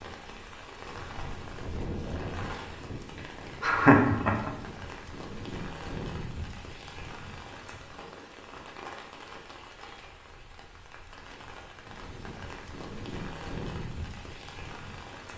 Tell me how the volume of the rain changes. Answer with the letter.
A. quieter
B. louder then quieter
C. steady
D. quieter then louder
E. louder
D.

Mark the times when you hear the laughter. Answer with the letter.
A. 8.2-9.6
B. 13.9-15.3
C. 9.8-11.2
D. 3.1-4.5
D.